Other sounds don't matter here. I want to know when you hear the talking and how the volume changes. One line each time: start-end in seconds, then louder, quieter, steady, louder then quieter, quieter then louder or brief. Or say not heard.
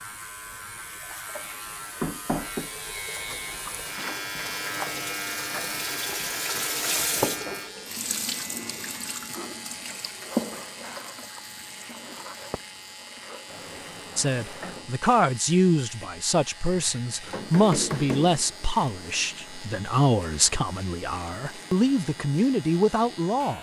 14.2-23.5 steady.